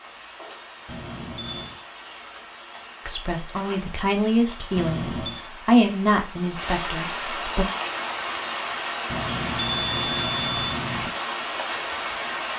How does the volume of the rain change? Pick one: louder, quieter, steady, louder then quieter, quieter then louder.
louder.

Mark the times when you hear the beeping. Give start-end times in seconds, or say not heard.
0.8-1.8, 4.8-5.4, 9.1-11.1.